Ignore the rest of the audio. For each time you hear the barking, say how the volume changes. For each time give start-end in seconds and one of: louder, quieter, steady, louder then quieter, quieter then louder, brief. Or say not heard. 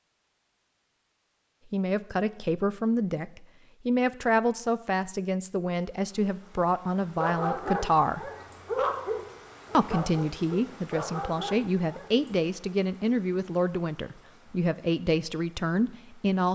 7.0-12.2 quieter then louder.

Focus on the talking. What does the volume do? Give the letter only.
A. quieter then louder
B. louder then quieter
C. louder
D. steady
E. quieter
D.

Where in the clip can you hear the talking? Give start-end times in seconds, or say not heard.
1.7-8.3, 9.7-16.5.